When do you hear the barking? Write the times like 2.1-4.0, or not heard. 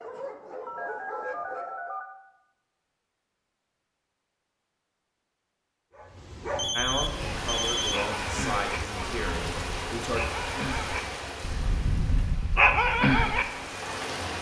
0.0-2.0, 5.9-14.2.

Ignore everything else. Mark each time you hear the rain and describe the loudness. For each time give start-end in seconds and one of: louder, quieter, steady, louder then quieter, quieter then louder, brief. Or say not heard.
6.8-14.3 quieter.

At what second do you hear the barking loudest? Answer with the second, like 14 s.
13 s.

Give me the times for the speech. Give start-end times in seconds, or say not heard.
6.8-10.3.